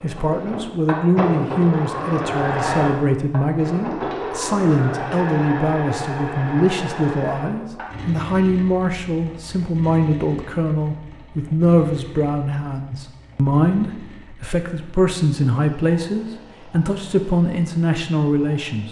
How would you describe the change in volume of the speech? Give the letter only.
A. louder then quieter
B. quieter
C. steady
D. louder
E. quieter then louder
C.